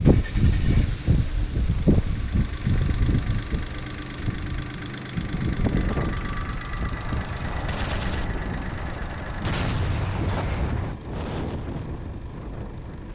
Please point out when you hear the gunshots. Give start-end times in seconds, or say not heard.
6.9-10.9.